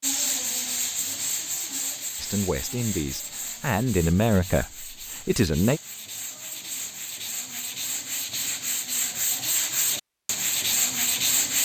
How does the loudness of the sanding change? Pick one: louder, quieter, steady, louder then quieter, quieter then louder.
quieter then louder.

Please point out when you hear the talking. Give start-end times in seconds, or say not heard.
2.2-5.8.